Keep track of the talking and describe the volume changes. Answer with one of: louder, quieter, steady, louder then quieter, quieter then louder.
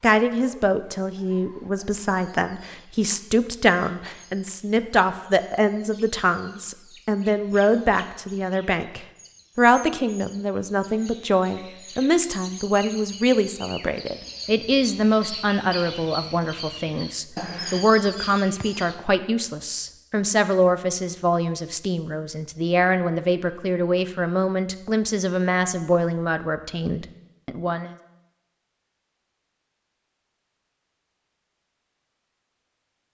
steady.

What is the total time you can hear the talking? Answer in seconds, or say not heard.
28 s.